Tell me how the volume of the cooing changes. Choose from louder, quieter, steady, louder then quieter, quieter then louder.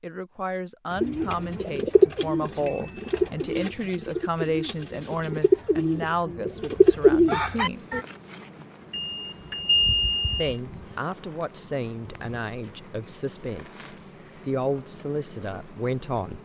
quieter then louder.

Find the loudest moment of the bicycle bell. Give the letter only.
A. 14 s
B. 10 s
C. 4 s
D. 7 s
B.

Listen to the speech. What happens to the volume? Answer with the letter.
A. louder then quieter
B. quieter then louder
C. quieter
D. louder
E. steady
E.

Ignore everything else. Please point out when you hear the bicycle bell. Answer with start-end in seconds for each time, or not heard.
2.6-3.1, 8.9-10.6.